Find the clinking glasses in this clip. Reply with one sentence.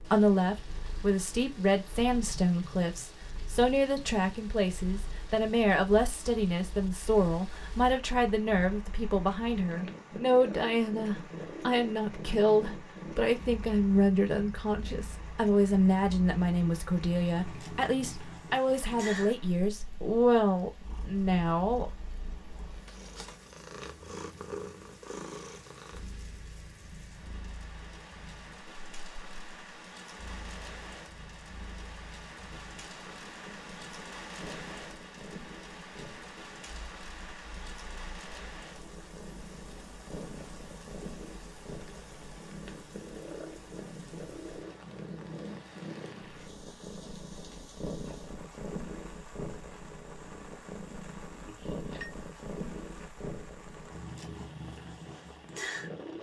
The clinking glasses can be heard from 51.5 to 52.1 s.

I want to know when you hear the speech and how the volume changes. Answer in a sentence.
The speech can be heard from 0.0 to 21.9 s, at a steady volume.